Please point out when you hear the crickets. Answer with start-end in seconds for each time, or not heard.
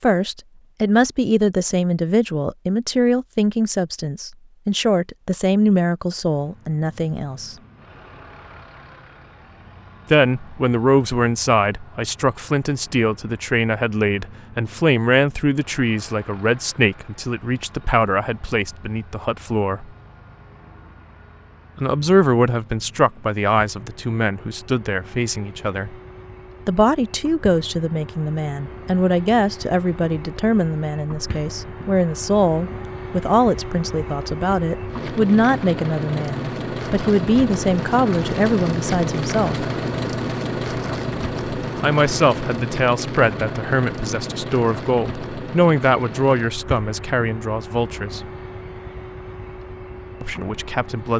not heard.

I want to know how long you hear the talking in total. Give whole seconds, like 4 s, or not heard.
42 s.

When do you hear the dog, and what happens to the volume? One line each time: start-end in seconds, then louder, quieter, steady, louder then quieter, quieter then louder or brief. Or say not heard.
not heard.